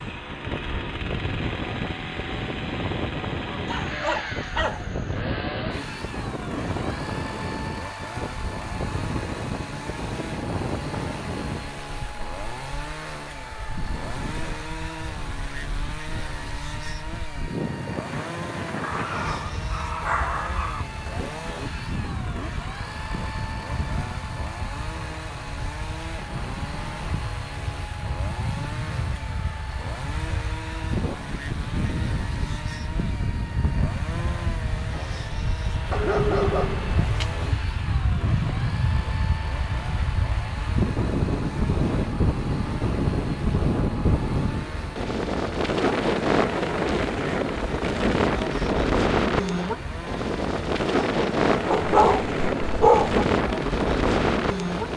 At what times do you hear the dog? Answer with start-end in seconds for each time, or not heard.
3.6-5.2, 18.8-20.9, 35.9-37.5, 51.7-53.2.